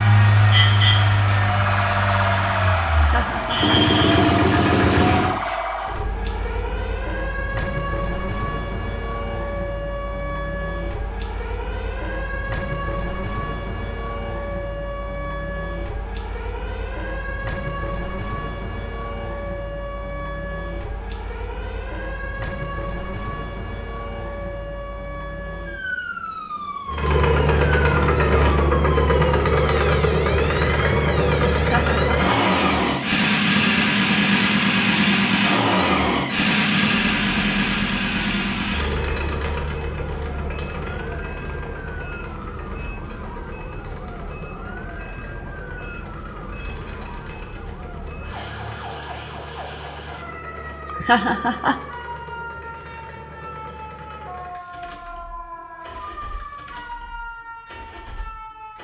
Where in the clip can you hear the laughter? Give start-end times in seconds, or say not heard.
2.9-3.6, 31.5-32.3, 50.9-51.8.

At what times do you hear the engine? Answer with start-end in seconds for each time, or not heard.
0.0-5.3, 26.9-58.7.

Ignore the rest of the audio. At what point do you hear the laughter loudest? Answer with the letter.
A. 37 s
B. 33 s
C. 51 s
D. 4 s
C.